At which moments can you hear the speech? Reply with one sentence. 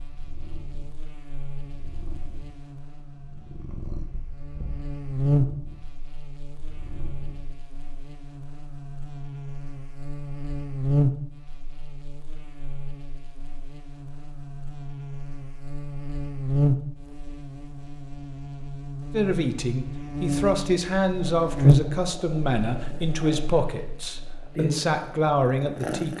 You can hear the speech from 19.1 to 26.1 s.